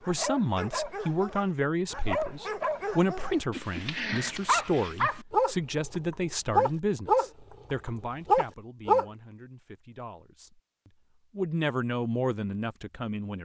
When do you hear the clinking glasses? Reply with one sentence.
You can't hear the clinking glasses here.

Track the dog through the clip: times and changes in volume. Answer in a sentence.
The dog can be heard from 0.0 to 9.1 s, getting louder.